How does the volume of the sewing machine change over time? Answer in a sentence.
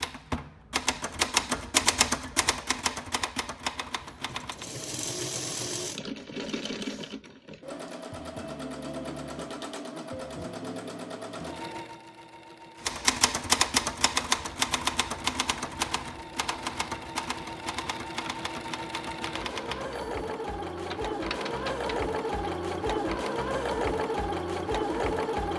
The loudness of the sewing machine goes down, then up.